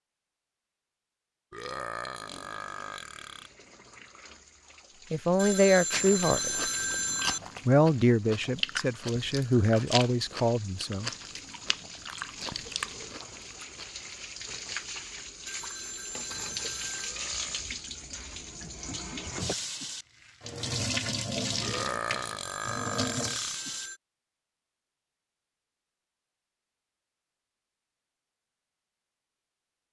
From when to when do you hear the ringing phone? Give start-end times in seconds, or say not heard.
5.3-7.4, 15.4-17.1, 22.4-24.0.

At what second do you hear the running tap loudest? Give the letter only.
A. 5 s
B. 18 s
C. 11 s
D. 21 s
D.